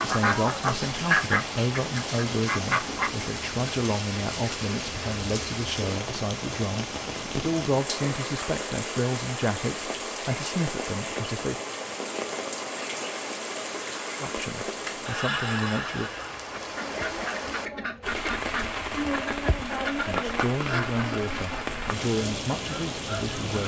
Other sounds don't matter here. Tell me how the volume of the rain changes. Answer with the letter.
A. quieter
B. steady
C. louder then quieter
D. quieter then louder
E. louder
B.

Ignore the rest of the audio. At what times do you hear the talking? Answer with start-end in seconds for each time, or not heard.
0.0-11.6, 14.2-16.1, 20.1-23.6.